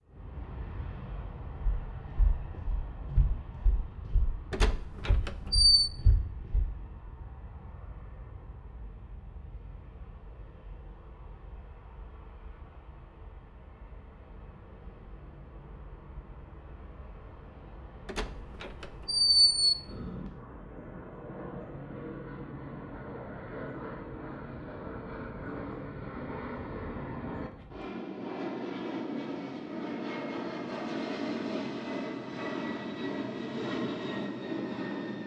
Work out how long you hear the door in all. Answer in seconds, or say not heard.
3 s.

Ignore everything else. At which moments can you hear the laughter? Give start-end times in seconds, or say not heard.
not heard.